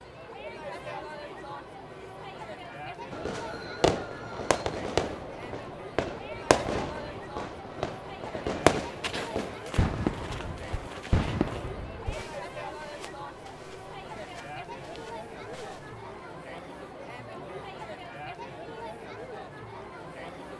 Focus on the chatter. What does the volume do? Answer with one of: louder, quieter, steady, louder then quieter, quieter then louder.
steady.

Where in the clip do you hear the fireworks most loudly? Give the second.
9 s.